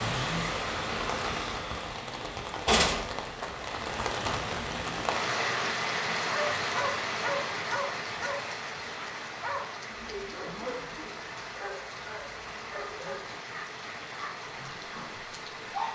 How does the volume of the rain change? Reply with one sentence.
The loudness of the rain goes down.